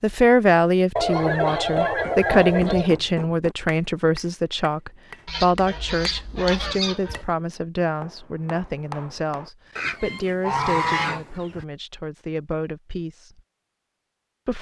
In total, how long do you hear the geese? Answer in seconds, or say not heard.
6 s.